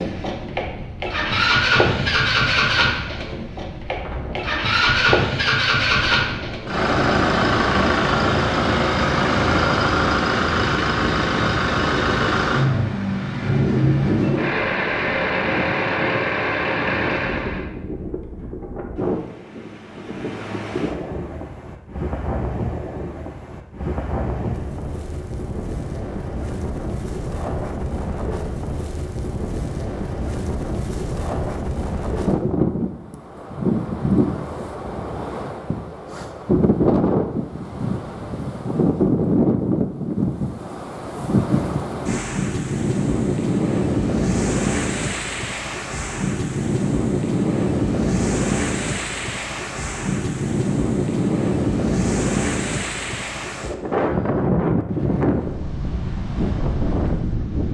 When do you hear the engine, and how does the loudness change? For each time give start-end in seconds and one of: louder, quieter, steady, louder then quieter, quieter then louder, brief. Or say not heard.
0.0-17.7 steady.